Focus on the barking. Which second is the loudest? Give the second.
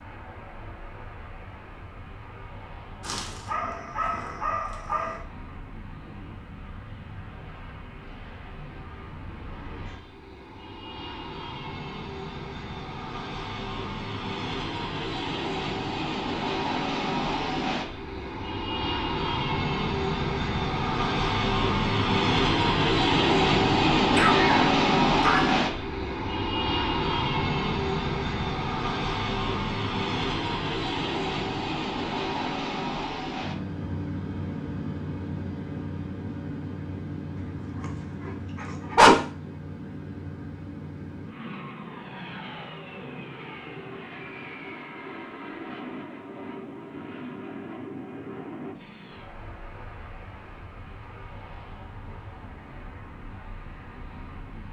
39 s.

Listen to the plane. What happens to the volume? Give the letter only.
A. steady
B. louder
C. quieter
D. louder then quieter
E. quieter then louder
D.